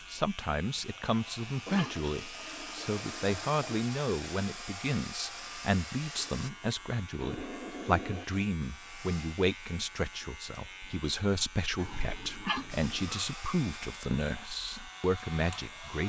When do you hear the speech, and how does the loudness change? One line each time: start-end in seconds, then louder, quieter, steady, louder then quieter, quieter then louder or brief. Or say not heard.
0.1-16.0 steady.